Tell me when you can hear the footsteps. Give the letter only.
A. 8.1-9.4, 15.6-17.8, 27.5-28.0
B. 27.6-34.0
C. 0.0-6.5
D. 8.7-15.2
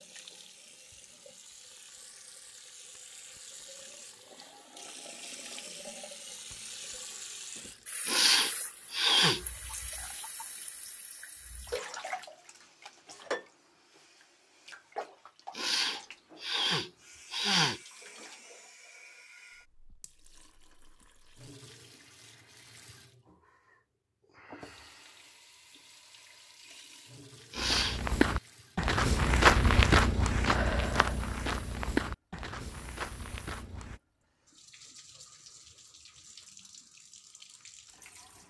B.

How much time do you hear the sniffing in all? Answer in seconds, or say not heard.
4 s.